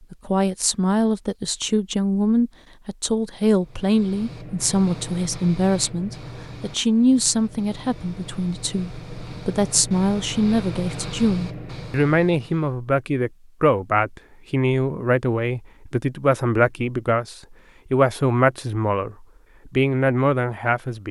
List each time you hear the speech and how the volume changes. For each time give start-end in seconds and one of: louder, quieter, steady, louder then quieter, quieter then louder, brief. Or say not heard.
0.1-21.0 steady.